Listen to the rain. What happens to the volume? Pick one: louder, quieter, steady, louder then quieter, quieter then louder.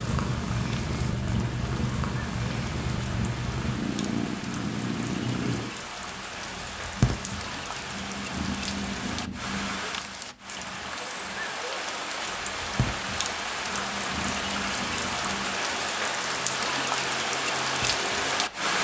louder.